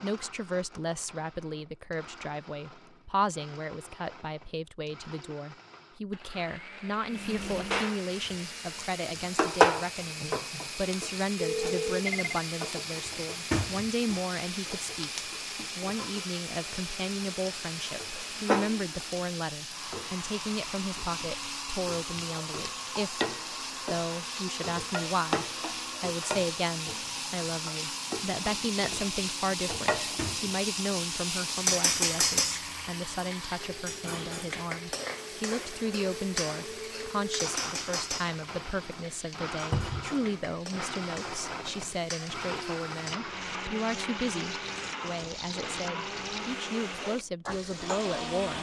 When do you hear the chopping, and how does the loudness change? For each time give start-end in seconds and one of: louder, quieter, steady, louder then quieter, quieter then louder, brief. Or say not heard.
not heard.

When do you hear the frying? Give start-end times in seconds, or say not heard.
7.1-48.5.